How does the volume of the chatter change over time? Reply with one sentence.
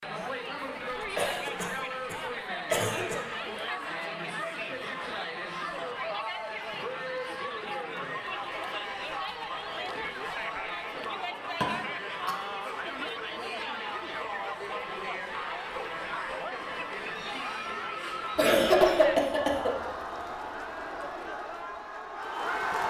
The volume of the chatter stays about the same.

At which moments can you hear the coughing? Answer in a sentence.
You can hear the coughing from 1.1 to 3.2 s, from 11.6 to 12.3 s and from 18.4 to 19.7 s.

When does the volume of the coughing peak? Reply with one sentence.
The volume of the coughing peaks at 19 seconds.